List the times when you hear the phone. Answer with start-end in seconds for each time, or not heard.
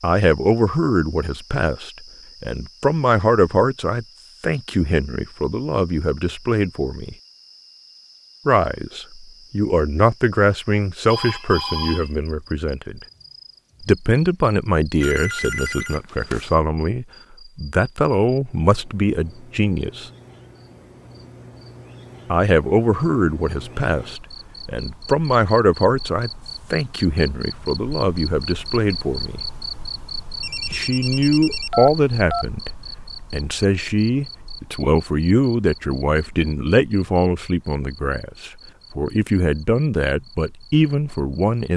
11.1-12.1, 15.0-16.5, 30.4-32.5.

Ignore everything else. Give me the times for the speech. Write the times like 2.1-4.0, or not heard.
0.0-7.2, 8.4-13.0, 13.8-20.1, 22.2-29.4, 30.7-41.7.